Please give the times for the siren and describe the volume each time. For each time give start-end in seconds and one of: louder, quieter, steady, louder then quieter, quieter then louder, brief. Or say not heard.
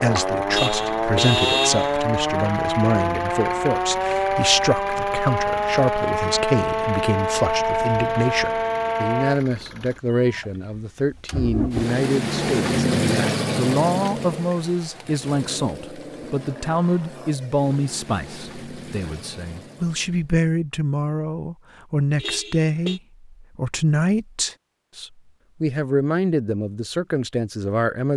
0.0-9.4 steady.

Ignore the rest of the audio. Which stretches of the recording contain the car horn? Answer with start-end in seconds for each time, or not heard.
0.5-2.0, 22.1-23.0.